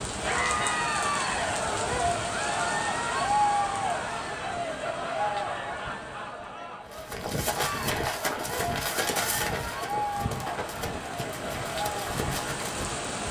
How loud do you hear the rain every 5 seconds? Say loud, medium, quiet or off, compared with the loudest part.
loud, medium, loud.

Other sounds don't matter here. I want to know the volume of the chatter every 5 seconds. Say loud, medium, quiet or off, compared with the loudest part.
loud, medium, medium.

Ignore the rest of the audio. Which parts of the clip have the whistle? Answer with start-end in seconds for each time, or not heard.
not heard.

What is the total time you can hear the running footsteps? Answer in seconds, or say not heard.
6 s.